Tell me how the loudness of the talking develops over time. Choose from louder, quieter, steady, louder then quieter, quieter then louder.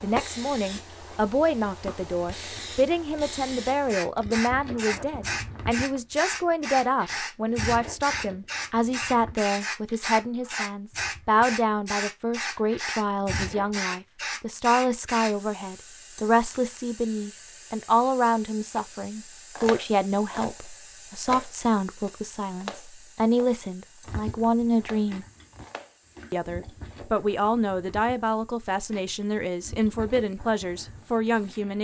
steady.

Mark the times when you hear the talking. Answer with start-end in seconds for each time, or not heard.
0.0-25.2, 26.3-31.7.